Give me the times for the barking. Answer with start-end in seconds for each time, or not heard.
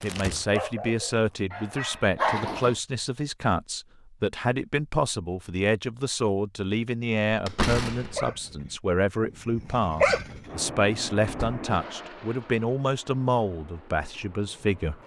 0.0-2.8, 8.0-10.5.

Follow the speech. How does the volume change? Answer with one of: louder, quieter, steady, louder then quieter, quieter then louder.
steady.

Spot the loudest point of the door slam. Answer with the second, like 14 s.
8 s.